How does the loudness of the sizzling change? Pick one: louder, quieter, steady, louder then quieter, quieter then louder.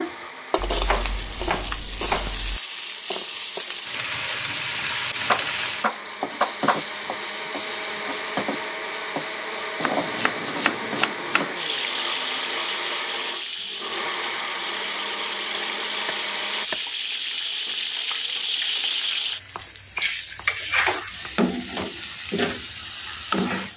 steady.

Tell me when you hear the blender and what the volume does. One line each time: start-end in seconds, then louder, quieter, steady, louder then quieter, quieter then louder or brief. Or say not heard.
0.0-16.7 louder.